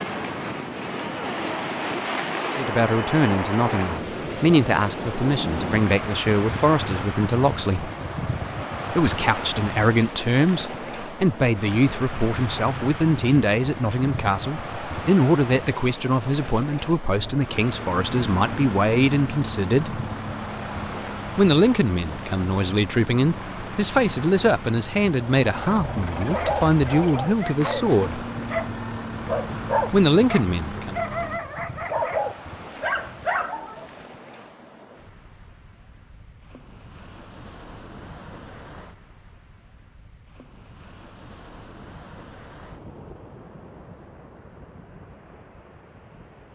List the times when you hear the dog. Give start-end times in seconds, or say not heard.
26.3-33.9.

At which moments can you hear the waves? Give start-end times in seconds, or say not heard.
0.0-46.5.